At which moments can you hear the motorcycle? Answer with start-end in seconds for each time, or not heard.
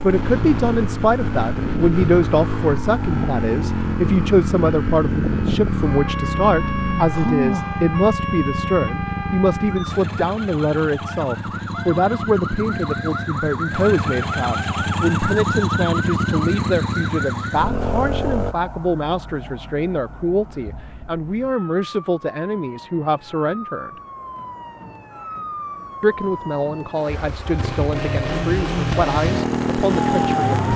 0.0-18.6, 27.2-30.7.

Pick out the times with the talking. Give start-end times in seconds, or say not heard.
0.0-23.9, 26.0-30.6.